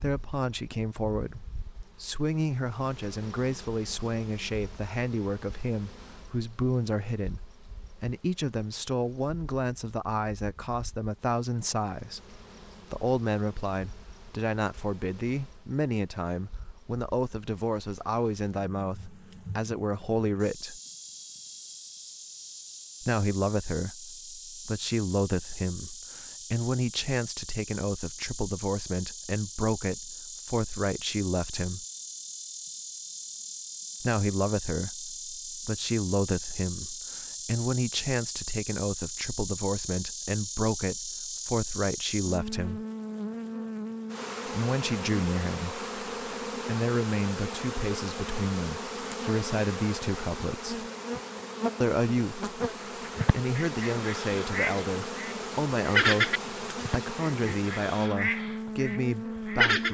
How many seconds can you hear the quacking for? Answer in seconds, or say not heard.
7 s.